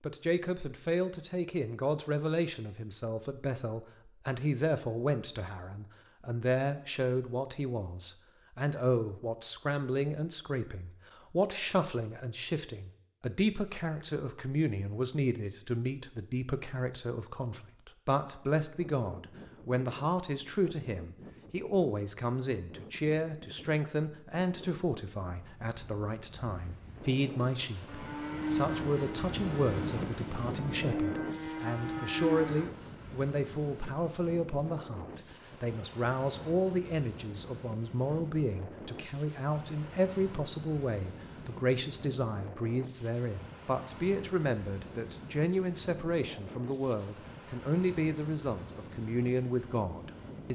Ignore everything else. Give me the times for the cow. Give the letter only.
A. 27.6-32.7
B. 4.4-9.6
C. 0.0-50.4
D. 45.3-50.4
A.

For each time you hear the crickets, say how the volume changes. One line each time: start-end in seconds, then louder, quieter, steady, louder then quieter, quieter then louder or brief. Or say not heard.
not heard.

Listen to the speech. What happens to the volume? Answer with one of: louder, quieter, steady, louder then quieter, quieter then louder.
steady.